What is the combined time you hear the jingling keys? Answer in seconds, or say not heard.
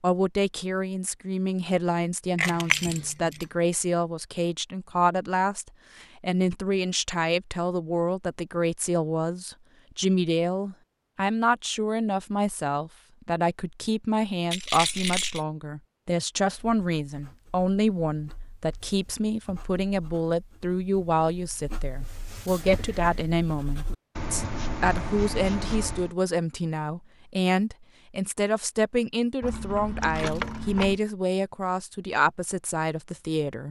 4 s.